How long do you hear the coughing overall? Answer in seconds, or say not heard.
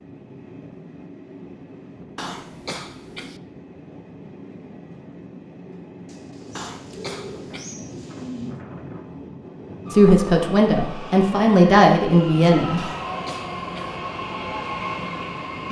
4 s.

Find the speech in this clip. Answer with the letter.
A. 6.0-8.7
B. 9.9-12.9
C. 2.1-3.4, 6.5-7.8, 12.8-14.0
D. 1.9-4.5
B.